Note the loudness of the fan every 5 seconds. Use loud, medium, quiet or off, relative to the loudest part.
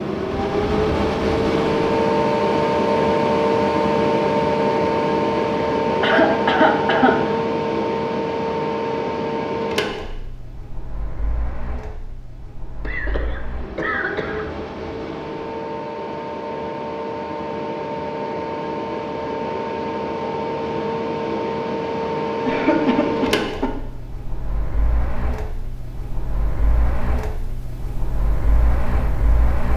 loud, loud, quiet, medium, medium, quiet.